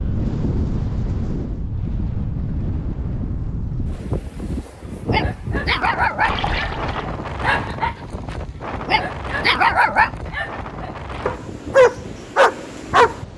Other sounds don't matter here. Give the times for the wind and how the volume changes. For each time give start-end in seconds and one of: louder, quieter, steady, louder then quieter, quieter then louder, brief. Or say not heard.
0.0-13.3 quieter.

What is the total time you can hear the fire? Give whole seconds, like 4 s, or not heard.
not heard.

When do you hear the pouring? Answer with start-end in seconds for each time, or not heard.
6.2-7.0.